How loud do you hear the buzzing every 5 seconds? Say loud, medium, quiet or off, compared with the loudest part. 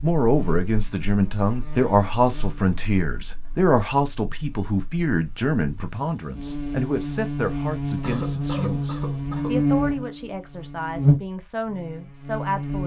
quiet, loud, loud.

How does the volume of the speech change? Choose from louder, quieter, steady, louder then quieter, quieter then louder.
quieter.